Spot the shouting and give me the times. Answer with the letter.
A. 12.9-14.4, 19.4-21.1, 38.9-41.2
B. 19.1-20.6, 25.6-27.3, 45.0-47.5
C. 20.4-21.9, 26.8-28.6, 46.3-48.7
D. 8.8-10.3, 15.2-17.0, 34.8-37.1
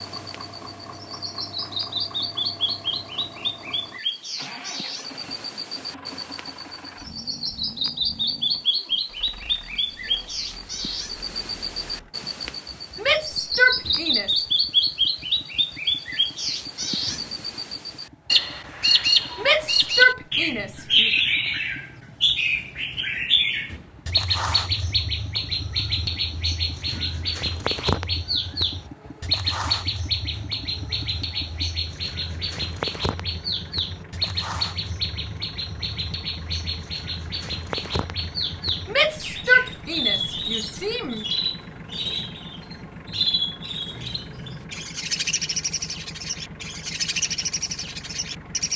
A.